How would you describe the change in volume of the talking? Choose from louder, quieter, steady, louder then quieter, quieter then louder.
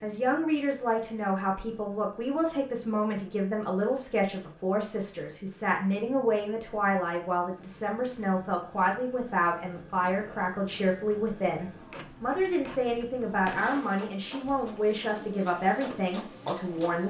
steady.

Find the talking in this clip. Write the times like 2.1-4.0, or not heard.
0.0-17.0.